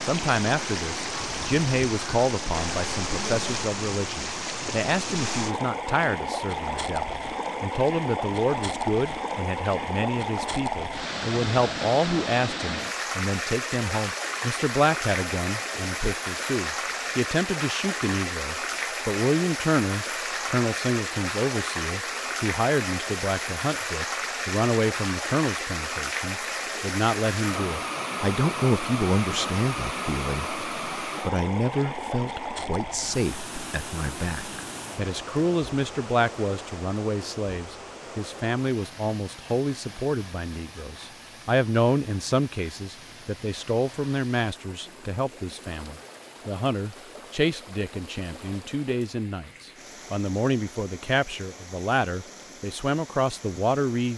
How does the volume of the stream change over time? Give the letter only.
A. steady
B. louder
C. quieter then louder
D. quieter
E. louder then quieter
D.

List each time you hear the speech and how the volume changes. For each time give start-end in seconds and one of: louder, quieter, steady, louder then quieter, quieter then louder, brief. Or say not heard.
0.0-54.1 steady.